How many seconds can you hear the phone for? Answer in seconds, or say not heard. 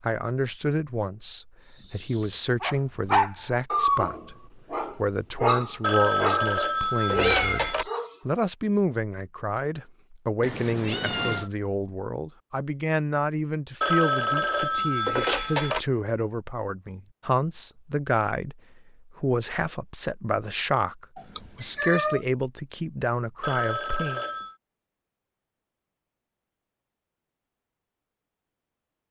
5 s.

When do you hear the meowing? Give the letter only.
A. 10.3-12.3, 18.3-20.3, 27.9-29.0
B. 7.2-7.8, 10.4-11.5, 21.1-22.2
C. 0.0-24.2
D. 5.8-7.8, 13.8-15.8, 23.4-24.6
B.